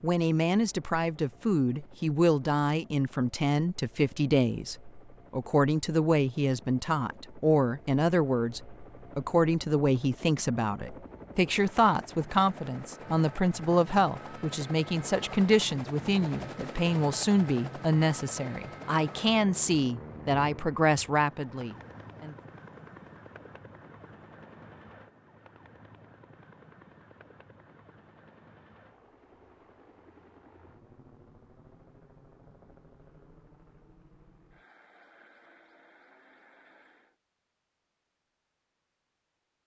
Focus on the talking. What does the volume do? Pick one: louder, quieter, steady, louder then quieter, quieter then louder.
steady.